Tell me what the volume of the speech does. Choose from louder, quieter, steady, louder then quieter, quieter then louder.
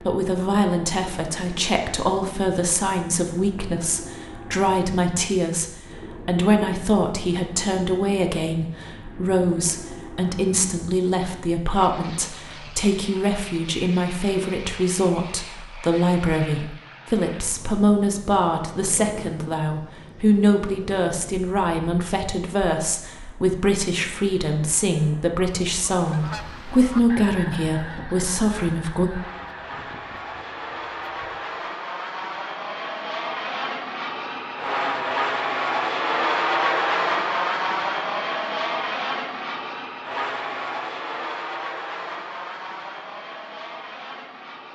steady.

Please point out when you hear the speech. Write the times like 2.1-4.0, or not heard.
0.0-29.1.